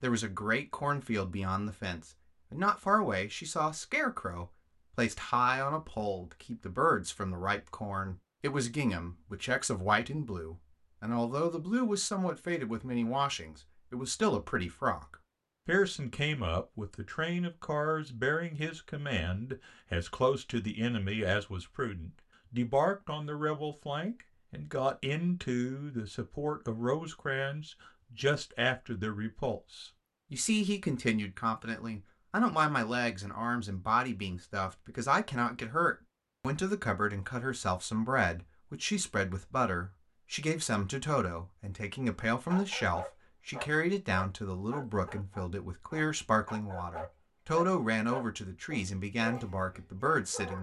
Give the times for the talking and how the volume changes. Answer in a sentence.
You can hear the talking from 0.0 to 50.5 s, at a steady volume.